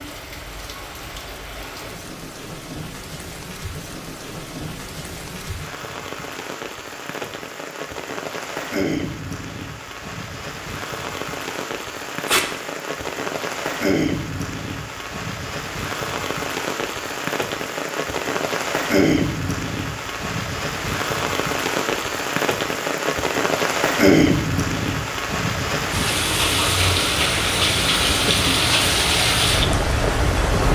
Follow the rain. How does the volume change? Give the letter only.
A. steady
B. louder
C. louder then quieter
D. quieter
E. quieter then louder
B.